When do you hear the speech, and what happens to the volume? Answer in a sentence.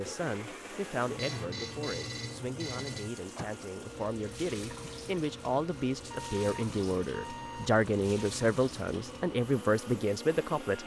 The speech can be heard from 0.0 to 10.8 s, getting louder.